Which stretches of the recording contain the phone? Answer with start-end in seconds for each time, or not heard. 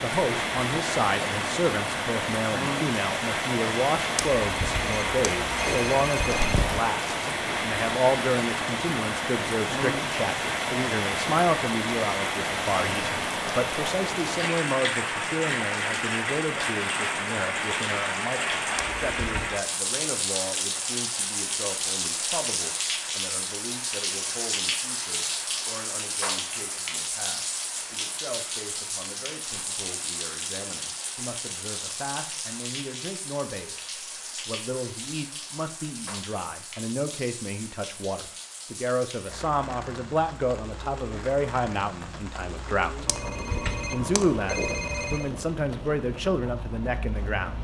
4.2-6.8, 18.8-19.5, 43.0-45.3.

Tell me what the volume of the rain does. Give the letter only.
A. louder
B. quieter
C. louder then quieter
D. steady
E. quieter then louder
B.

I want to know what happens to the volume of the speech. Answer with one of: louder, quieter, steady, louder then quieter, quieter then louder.
quieter then louder.